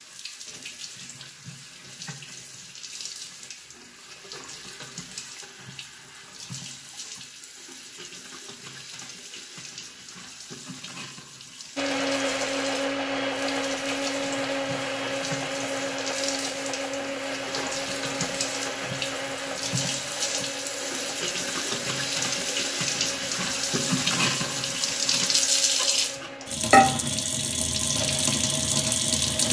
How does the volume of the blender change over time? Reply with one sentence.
The loudness of the blender goes down.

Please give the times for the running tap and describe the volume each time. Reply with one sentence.
You can hear the running tap from 0.0 to 29.4 s, getting louder.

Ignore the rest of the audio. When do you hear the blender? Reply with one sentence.
You can hear the blender from 11.8 to 26.6 s.